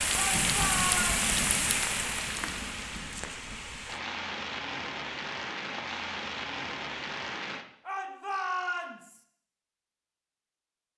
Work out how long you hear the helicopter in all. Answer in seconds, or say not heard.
not heard.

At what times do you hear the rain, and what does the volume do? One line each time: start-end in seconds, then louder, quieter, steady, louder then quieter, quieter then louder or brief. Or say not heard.
0.0-7.7 quieter.